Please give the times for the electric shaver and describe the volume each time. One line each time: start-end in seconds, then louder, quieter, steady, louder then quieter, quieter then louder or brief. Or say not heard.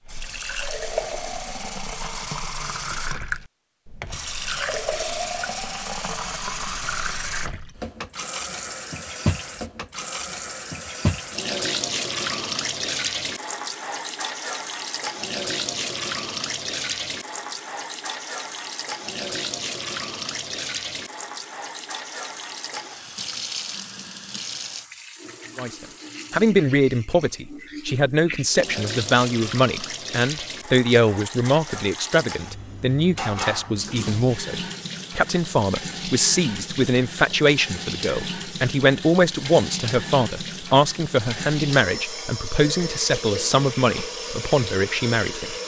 not heard.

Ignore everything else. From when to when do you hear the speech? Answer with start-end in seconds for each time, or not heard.
25.6-45.5.